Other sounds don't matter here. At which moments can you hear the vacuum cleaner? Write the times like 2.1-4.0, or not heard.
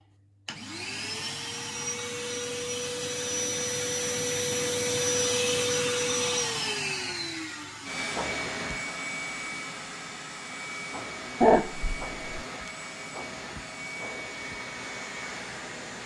0.0-16.0.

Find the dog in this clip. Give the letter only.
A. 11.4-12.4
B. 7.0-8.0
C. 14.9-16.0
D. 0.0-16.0
A.